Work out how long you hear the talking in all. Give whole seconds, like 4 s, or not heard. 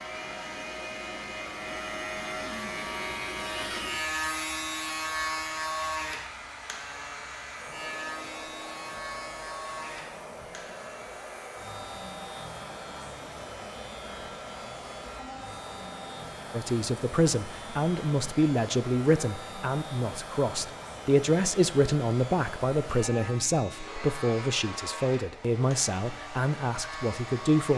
11 s.